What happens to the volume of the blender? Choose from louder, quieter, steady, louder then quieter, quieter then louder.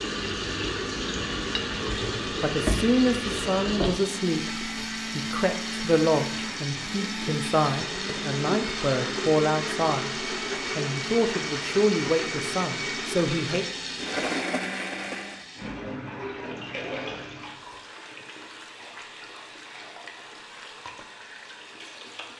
steady.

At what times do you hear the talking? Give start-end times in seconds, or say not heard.
2.4-13.7.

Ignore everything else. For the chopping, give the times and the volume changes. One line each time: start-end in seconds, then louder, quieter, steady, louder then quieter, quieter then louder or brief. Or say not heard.
not heard.